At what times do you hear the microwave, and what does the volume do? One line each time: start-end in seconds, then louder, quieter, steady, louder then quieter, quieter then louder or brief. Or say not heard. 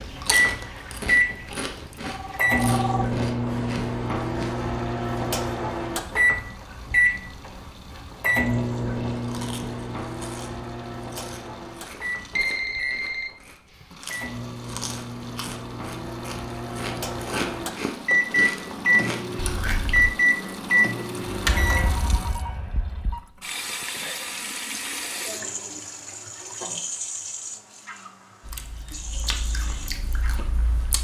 0.0-21.9 quieter then louder.